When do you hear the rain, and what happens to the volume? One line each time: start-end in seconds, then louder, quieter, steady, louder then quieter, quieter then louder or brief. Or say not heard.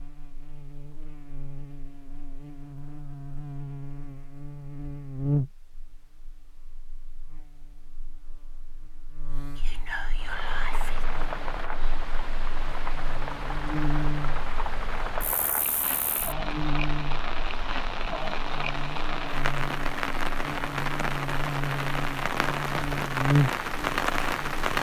10.1-24.7 louder.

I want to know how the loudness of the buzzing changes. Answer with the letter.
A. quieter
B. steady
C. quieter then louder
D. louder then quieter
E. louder
E.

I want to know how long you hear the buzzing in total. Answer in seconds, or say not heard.
25 s.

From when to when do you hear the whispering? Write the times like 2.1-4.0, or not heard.
9.6-11.1.